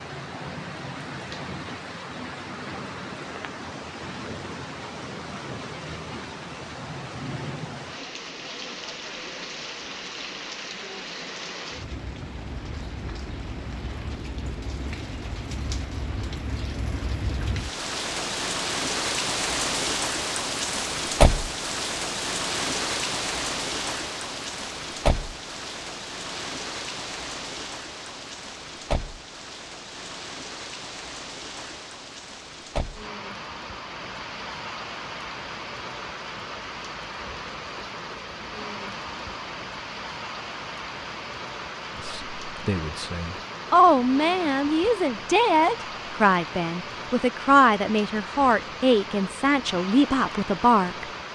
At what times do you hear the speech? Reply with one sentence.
The speech can be heard from 42.0 to 51.0 s.